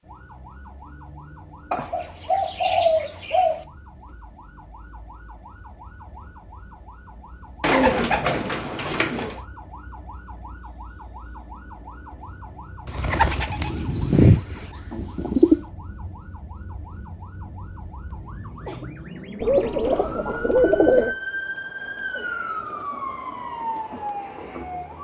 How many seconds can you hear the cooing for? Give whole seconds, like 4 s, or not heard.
8 s.